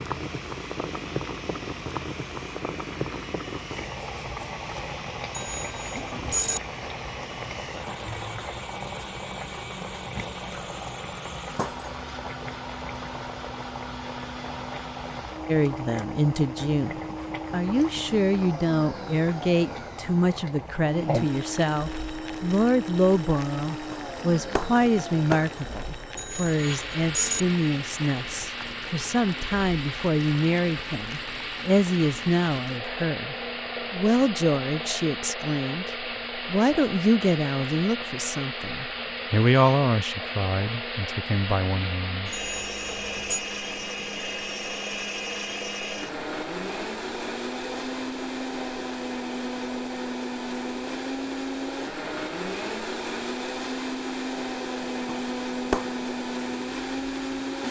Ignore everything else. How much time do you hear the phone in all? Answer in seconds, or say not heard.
4 s.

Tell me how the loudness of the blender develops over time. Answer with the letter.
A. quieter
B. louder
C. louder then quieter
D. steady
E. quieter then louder
B.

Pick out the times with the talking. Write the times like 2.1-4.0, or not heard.
15.4-35.9, 36.5-42.4.